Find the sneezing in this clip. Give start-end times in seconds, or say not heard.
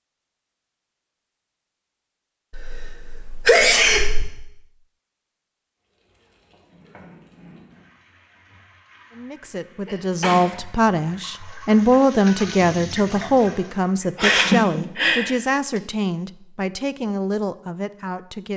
2.5-4.2, 9.8-10.6, 14.2-15.8.